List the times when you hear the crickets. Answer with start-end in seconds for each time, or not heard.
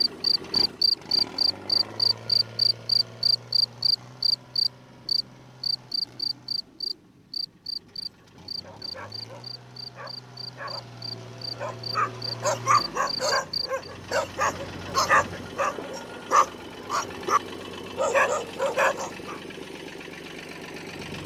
0.0-13.9.